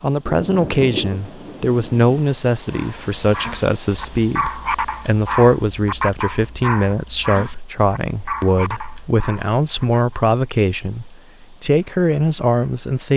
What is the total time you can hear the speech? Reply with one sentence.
You can hear the speech for 13 seconds altogether.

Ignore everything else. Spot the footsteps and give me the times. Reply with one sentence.
The footsteps can't be heard in this clip.